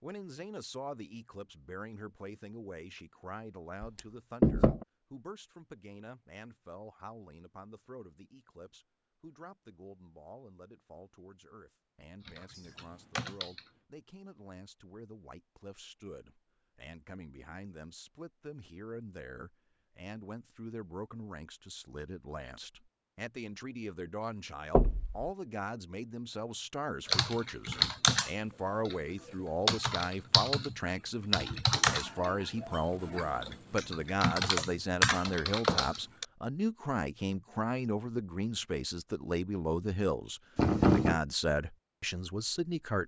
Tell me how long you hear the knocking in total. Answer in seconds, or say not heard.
2 s.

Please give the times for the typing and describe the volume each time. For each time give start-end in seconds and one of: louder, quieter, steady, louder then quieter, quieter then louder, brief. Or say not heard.
12.2-13.7 brief
27.1-28.9 brief
29.6-36.2 quieter then louder.